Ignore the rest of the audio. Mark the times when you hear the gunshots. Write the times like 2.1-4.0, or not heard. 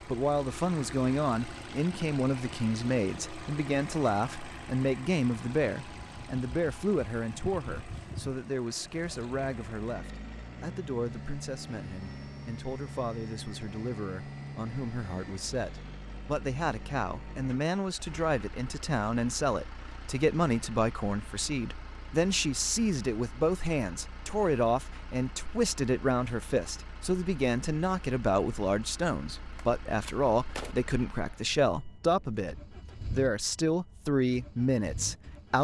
29.6-30.8.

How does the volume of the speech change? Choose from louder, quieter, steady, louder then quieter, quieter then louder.
quieter then louder.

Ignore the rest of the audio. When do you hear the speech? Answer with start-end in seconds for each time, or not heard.
0.1-35.5.